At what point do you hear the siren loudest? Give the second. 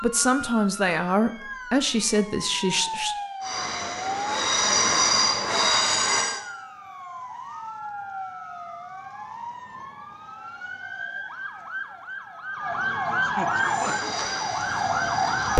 15 s.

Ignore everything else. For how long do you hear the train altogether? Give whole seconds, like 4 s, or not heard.
5 s.